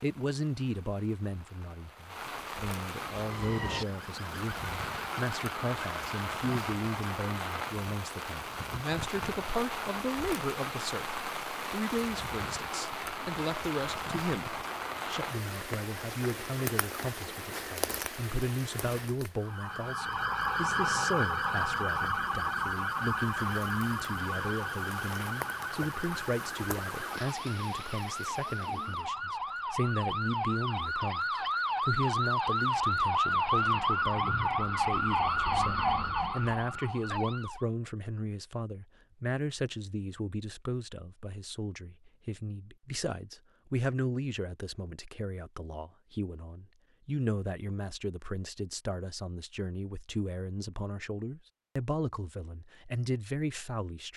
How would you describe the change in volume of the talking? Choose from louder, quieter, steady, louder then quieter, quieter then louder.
steady.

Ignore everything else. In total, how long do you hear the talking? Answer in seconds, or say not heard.
54 s.